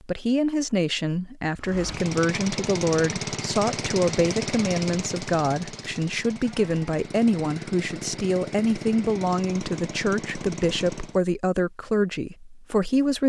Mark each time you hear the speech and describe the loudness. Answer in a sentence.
The speech can be heard from 0.1 to 13.2 s, at a steady volume.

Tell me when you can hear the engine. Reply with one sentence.
You can hear the engine from 1.6 to 11.2 s.